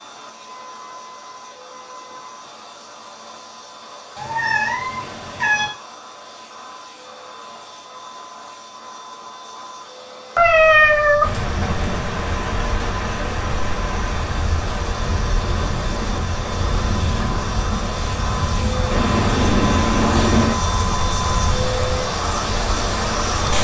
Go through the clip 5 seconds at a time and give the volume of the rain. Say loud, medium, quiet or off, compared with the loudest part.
off, off, loud, loud, loud.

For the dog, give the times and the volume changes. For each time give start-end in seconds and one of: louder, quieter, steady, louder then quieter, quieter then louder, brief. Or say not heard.
not heard.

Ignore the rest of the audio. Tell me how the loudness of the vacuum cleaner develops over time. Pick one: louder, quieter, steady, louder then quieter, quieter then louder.
louder.